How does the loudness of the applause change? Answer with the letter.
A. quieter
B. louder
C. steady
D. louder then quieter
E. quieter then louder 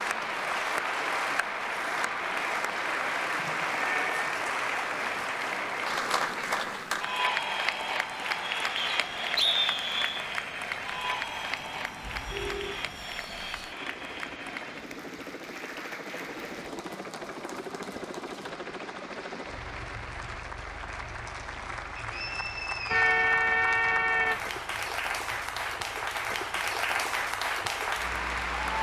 E.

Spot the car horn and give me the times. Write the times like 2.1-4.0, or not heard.
3.8-4.2, 12.1-13.0, 22.9-24.4.